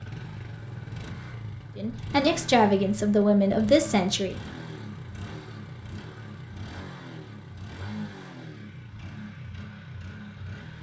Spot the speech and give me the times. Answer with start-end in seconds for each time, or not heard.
1.8-4.3.